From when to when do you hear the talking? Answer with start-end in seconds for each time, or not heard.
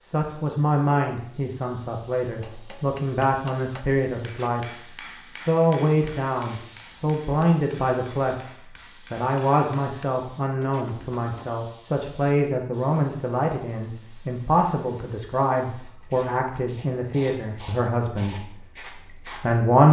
0.0-4.7, 5.3-8.5, 9.1-19.8.